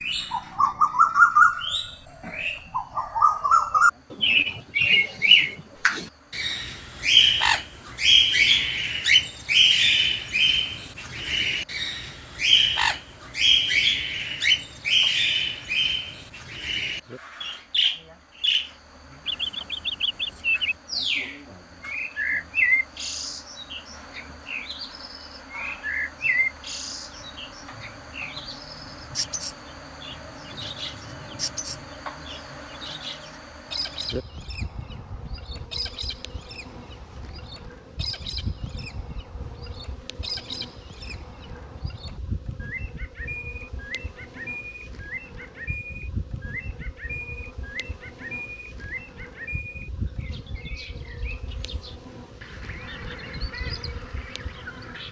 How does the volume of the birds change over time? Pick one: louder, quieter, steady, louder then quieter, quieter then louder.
quieter.